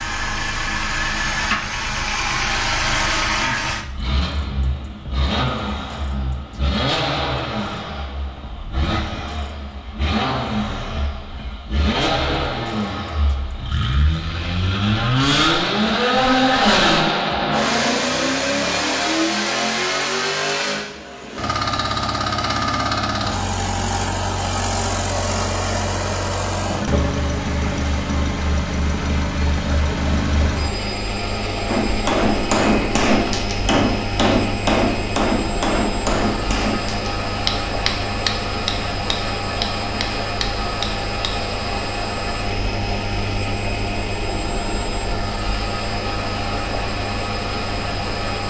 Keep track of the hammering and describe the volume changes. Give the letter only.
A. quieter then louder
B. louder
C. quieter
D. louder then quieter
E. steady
C.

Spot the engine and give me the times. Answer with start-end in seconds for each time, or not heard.
0.0-48.4.